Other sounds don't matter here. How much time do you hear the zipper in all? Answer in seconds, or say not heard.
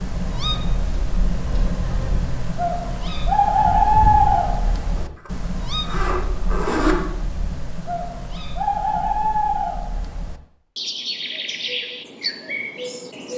2 s.